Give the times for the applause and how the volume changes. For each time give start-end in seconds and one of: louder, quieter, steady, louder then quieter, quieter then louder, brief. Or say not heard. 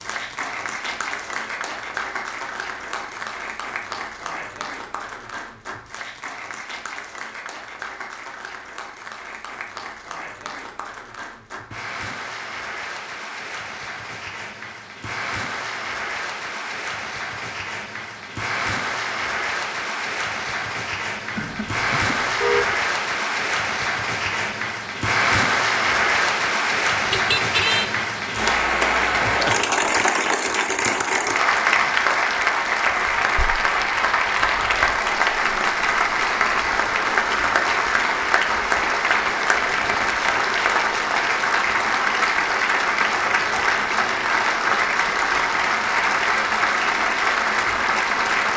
0.0-48.5 louder.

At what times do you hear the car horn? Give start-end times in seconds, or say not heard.
21.4-22.8, 27.1-27.9.